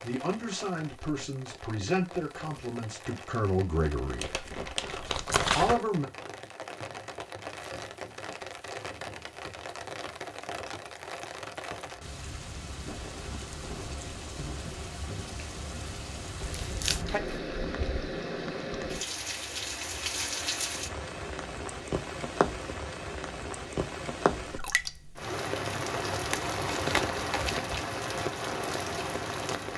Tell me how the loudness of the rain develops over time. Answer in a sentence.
The volume of the rain goes up.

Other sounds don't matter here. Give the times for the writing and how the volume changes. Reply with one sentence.
You can't hear the writing here.